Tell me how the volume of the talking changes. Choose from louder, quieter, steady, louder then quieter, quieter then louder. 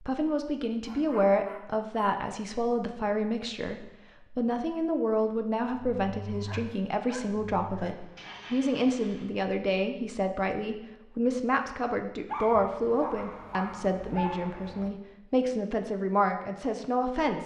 steady.